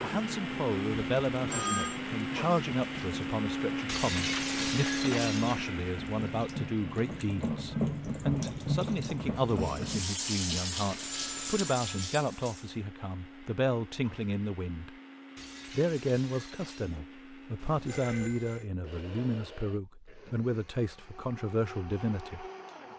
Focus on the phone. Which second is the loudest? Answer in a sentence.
The loudest moment of the phone is at 2 seconds.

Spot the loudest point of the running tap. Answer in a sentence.
The loudest moment of the running tap is at 8 seconds.